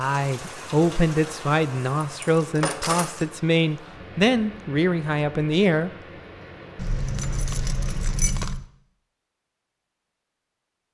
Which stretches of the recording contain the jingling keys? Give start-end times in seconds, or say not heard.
1.8-3.3, 6.8-8.7.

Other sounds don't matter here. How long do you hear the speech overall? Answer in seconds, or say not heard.
6 s.